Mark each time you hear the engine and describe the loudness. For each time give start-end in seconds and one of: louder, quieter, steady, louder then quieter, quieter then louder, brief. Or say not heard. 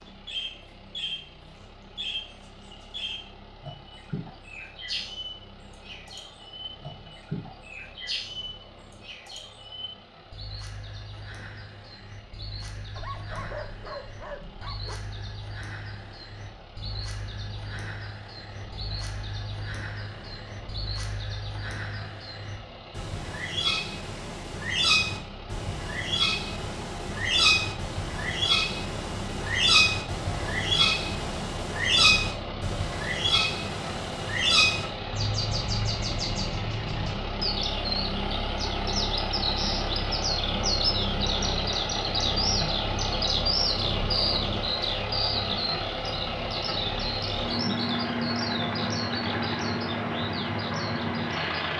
0.0-51.7 louder.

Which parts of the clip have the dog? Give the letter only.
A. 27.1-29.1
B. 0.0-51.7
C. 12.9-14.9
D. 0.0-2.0
C.